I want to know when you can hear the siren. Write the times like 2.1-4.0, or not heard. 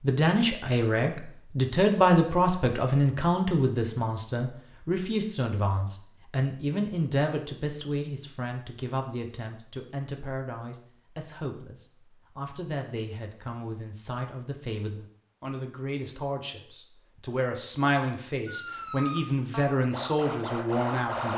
18.4-21.3.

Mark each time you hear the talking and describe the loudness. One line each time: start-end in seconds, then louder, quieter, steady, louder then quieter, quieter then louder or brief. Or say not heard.
0.0-21.3 quieter then louder.